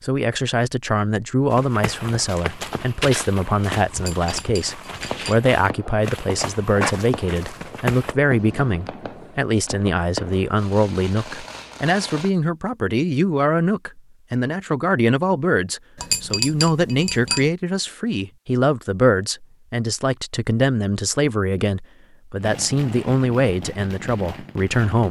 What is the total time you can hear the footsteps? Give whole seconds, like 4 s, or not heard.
7 s.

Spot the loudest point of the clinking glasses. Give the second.
16 s.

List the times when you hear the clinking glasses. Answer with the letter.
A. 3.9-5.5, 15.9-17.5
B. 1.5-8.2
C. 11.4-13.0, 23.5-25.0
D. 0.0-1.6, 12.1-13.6
A.